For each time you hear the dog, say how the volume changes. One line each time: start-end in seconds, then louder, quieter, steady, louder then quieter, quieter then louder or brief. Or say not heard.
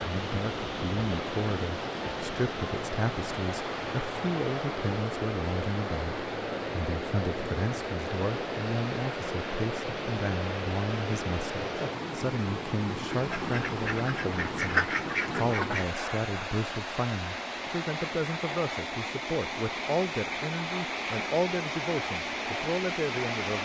not heard.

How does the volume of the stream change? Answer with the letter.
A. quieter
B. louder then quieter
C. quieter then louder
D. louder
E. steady
E.